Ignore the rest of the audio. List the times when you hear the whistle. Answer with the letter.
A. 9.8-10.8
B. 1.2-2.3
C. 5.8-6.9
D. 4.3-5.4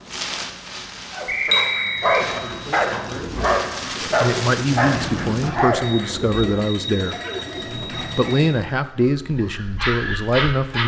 B.